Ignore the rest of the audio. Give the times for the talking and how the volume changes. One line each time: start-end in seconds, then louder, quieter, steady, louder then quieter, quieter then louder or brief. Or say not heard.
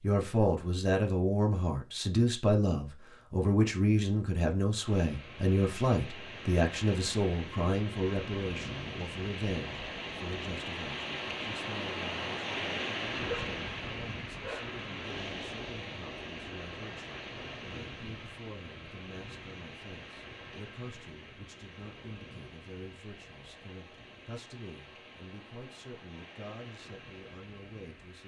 0.0-28.2 quieter.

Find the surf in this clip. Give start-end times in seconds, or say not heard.
4.8-28.2.